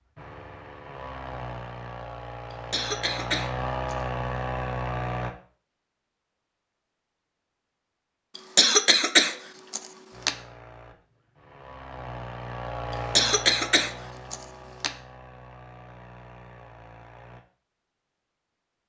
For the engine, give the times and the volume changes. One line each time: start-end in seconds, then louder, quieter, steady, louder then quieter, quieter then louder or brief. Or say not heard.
0.0-5.3 louder
10.1-17.4 louder then quieter.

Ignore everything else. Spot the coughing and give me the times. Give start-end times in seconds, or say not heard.
2.5-4.0, 8.3-10.3, 12.9-14.9.